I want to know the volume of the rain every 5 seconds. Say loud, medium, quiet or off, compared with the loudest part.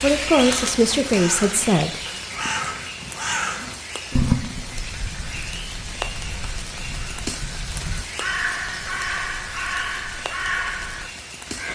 loud, loud, medium.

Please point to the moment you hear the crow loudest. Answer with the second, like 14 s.
4 s.